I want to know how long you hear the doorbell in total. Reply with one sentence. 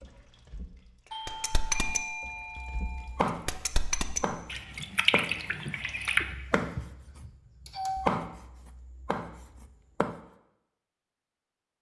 The doorbell can be heard for 4 seconds in total.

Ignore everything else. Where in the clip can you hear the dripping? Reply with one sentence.
You can hear the dripping from 0.0 to 6.3 s.